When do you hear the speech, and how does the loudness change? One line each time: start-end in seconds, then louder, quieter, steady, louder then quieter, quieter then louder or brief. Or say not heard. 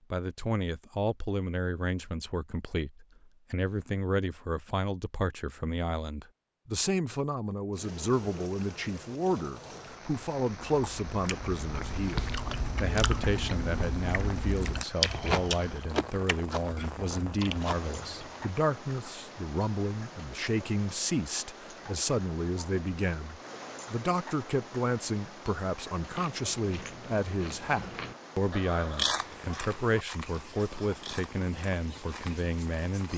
0.1-33.1 steady.